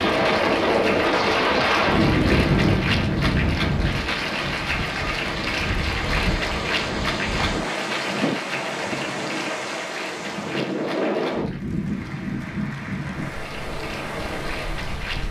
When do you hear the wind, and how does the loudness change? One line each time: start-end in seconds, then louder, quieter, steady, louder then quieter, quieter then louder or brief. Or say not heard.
0.0-15.2 quieter.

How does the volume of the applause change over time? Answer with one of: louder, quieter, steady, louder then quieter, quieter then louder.
quieter.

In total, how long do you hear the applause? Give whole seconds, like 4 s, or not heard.
15 s.